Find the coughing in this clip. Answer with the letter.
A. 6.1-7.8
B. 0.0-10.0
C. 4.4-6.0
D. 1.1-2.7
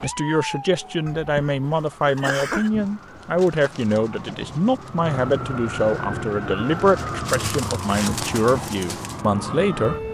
D.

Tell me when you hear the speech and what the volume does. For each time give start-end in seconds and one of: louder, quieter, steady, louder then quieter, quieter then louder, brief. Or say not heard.
0.0-10.0 steady.